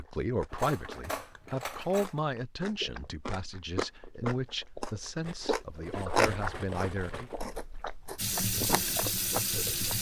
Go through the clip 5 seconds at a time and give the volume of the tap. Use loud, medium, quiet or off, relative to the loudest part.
off, loud.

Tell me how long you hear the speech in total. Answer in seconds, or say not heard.
7 s.